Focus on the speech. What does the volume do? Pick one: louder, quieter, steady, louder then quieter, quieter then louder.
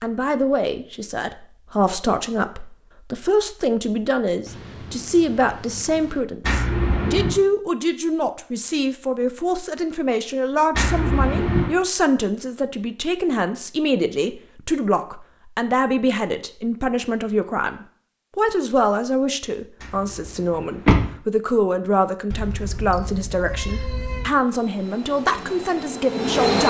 steady.